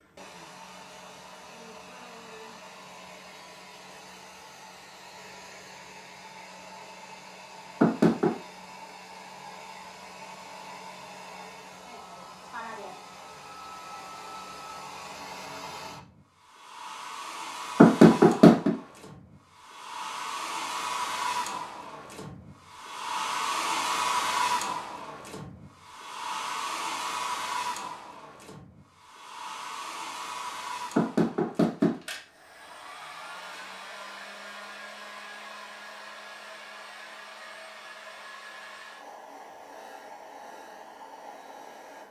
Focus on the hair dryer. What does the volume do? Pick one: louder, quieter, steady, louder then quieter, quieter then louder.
louder then quieter.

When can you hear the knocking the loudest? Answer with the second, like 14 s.
18 s.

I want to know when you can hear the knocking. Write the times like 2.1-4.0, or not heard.
7.8-8.3, 17.8-18.7, 30.9-31.9.